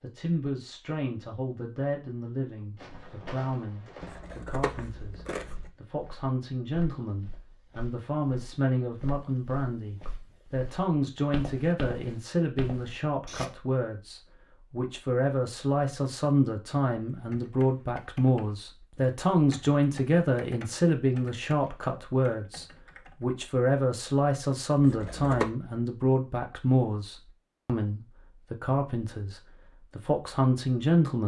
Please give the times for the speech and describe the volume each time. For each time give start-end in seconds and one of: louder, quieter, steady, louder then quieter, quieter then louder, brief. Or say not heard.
0.0-31.2 louder.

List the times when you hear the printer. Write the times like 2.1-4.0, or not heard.
not heard.